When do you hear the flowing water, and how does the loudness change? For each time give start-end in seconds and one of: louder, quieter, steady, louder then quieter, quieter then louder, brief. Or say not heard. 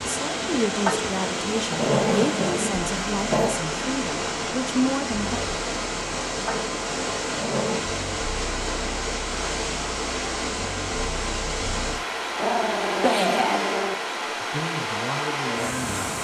0.0-16.1 steady.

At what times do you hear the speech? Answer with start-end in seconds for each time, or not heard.
0.0-5.4, 14.3-16.0.